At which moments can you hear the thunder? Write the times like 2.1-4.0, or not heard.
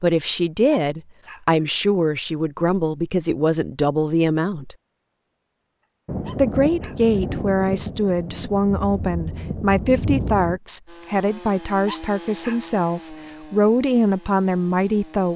6.0-10.6.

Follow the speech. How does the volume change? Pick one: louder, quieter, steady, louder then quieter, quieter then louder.
steady.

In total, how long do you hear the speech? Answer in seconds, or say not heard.
14 s.